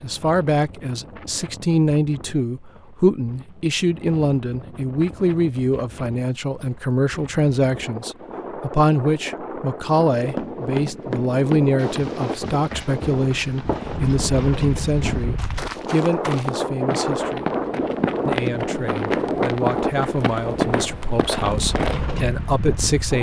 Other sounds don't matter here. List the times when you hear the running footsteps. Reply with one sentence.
You can hear the running footsteps from 10.2 to 22.0 s.